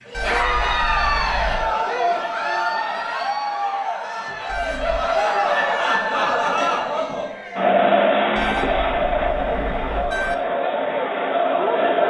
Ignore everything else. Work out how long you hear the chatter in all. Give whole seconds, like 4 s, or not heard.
12 s.